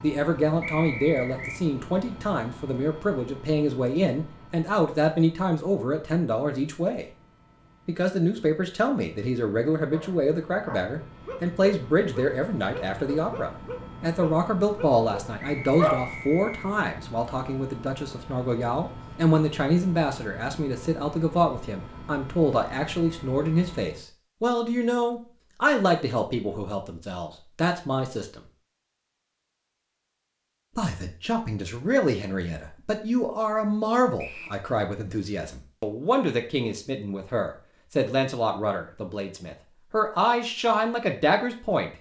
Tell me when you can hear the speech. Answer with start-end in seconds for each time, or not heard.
0.0-7.0, 7.8-28.4, 30.8-41.9.